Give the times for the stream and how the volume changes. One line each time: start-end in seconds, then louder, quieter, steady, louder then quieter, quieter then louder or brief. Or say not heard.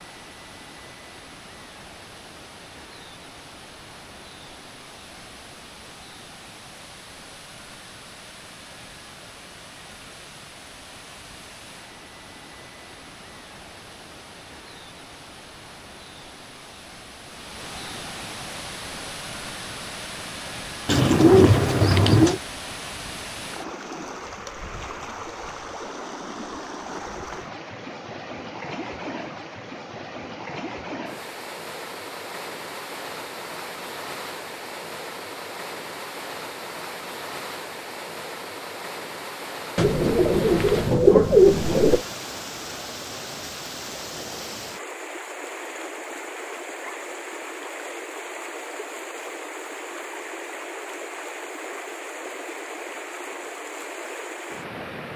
0.0-55.1 louder.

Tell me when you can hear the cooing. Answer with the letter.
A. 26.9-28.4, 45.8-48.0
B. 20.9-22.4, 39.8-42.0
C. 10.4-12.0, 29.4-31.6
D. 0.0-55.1
B.